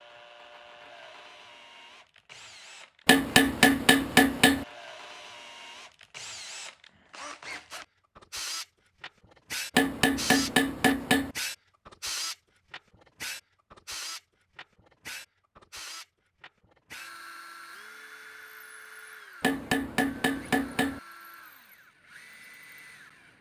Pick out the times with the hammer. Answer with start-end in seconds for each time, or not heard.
3.0-4.7, 9.8-11.3, 19.4-21.0.